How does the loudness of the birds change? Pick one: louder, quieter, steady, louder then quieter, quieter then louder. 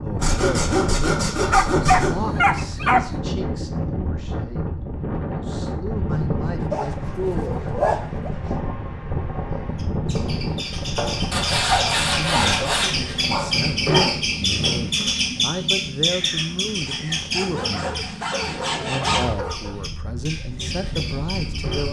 louder then quieter.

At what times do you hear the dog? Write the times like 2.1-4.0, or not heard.
1.4-3.0, 6.7-8.3, 11.7-14.2, 17.4-19.8.